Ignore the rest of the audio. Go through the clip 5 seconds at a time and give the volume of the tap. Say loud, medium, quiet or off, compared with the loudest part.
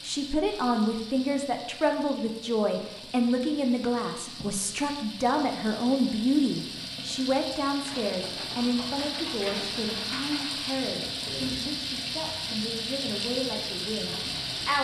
medium, loud, loud.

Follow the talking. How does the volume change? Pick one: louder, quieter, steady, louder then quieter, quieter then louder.
quieter.